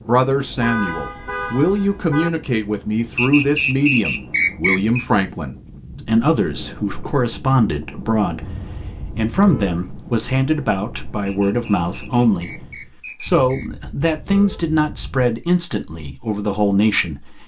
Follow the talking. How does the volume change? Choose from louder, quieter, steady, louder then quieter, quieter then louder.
steady.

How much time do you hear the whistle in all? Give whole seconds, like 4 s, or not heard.
4 s.